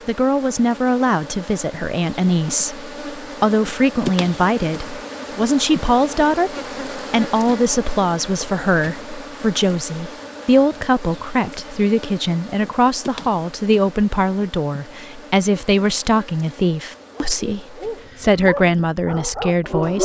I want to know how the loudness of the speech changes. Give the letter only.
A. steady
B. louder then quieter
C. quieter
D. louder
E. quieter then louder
A.